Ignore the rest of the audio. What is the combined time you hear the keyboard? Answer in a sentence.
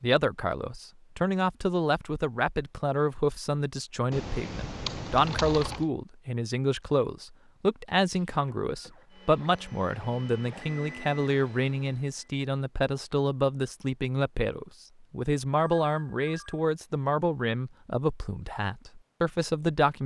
You can hear the keyboard for 2 seconds altogether.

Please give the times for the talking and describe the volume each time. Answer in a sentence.
The talking can be heard from 0.0 to 20.0 s, at a steady volume.